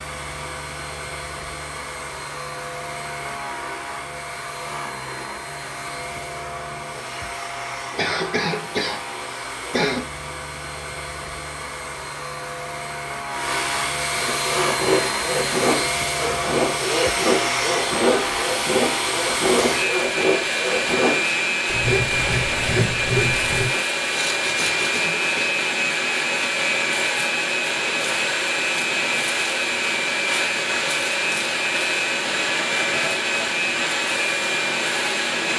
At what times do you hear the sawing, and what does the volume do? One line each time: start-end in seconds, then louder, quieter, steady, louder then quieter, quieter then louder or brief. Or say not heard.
14.1-24.9 steady.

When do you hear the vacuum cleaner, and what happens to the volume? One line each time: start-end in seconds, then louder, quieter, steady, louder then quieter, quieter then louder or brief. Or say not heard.
0.0-35.5 louder.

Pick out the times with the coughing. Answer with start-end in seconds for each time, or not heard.
8.0-10.1, 24.6-25.6.